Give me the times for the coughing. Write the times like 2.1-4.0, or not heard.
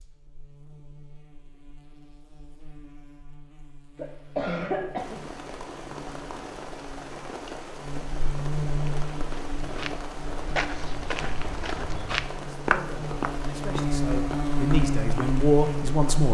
4.0-5.2.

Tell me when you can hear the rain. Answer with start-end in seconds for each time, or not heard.
5.0-16.2.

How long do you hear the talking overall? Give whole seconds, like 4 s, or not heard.
4 s.